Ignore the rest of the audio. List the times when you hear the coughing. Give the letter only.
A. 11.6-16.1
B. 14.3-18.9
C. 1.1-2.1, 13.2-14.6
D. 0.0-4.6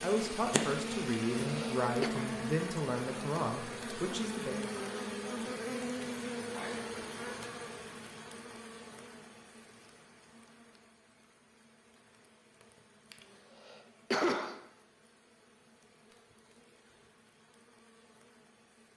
C.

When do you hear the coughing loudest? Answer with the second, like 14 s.
14 s.